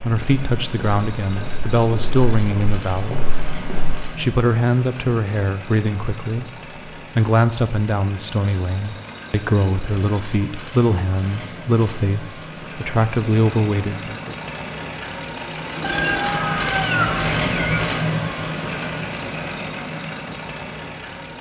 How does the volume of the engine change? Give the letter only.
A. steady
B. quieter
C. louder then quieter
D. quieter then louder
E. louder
E.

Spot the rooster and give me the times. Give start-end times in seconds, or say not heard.
15.8-17.9.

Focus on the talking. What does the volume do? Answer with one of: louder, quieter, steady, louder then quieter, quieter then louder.
steady.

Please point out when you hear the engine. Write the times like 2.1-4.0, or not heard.
0.0-21.3.